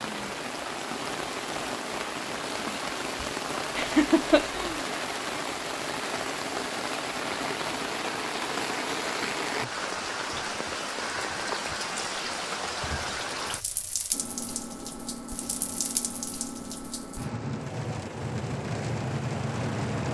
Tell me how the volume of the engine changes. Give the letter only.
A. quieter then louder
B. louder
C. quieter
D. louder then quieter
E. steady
E.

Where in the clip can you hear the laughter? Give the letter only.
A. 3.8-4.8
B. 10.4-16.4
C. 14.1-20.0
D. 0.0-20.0
A.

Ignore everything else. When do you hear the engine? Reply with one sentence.
The engine can be heard from 14.1 to 20.0 s.